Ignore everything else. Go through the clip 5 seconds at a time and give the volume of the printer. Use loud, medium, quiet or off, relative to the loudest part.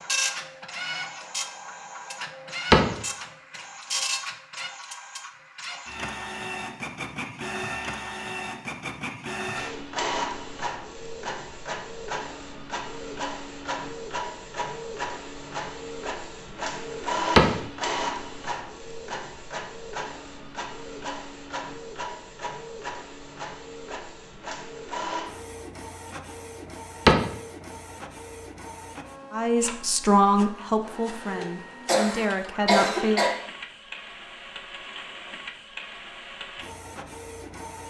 loud, loud, loud, loud, medium, medium, medium, medium.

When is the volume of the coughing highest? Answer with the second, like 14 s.
33 s.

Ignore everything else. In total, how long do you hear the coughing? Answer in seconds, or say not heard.
2 s.